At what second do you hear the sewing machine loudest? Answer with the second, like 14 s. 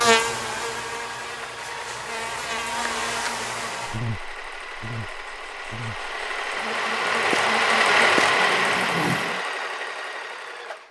8 s.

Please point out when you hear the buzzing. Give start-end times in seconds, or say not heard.
0.0-9.4.